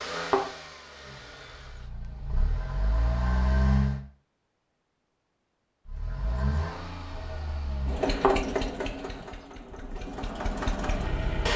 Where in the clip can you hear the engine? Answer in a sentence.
The engine can be heard from 0.0 to 4.0 s and from 5.8 to 11.5 s.